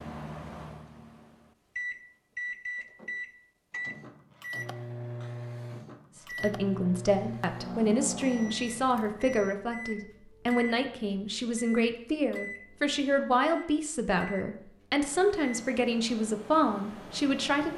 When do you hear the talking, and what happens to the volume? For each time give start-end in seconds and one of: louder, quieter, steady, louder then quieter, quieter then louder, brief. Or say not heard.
6.4-17.7 steady.